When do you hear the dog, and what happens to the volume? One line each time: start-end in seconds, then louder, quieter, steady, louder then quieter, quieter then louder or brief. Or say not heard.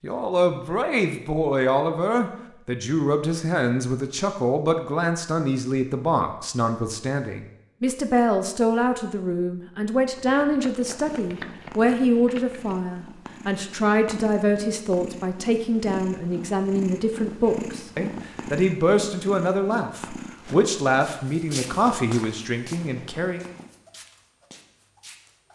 not heard.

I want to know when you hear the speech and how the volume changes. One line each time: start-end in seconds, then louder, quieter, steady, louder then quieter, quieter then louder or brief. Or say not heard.
0.0-23.5 steady.